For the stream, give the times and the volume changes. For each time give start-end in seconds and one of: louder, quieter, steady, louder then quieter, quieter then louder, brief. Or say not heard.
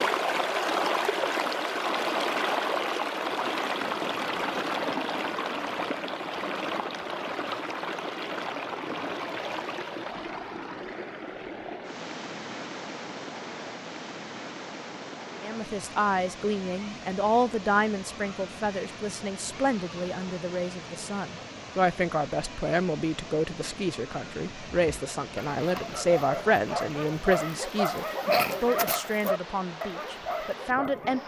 0.0-31.2 quieter.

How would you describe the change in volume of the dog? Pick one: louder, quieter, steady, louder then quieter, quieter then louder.
louder then quieter.